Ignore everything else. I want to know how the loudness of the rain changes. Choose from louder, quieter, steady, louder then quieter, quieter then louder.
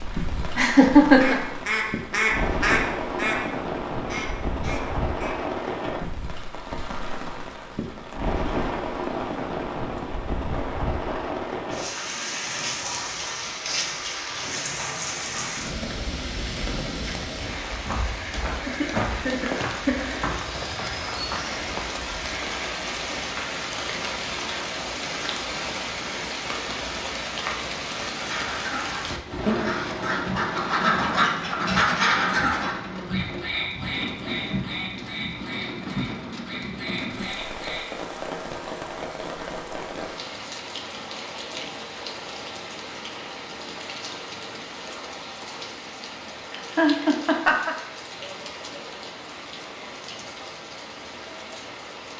quieter.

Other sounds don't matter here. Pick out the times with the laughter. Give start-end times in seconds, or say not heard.
0.6-1.4, 18.6-19.9, 46.5-47.8.